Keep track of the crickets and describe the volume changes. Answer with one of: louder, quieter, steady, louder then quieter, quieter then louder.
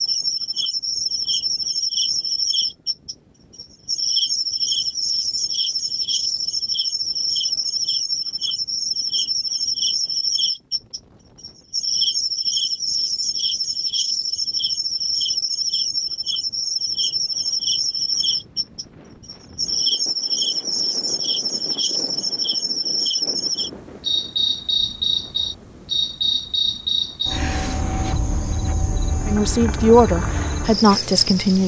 steady.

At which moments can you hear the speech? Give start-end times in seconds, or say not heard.
29.2-31.6.